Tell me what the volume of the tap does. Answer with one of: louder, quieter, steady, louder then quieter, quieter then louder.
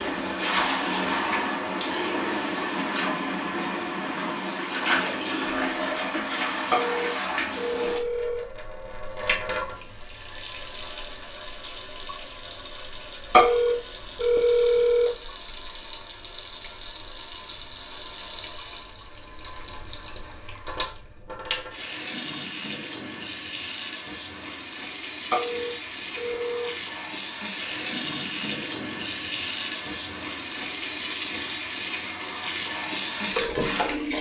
quieter then louder.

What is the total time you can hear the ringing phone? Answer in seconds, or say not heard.
5 s.